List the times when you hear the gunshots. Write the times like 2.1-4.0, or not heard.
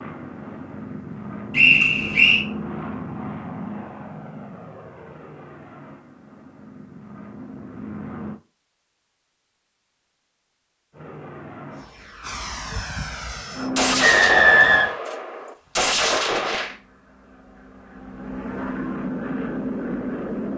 13.8-16.8.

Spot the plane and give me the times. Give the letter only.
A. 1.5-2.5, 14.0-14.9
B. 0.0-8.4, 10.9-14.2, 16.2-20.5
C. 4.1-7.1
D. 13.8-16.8
B.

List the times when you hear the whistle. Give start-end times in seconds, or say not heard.
1.5-2.5, 14.0-14.9.